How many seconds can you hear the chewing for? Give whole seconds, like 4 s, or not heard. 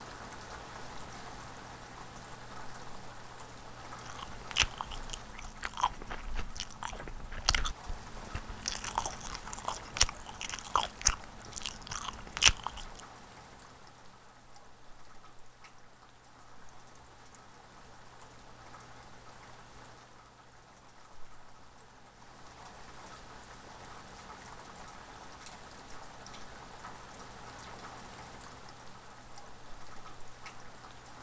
9 s.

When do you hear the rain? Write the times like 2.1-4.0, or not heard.
0.0-31.1.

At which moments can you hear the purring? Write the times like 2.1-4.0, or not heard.
not heard.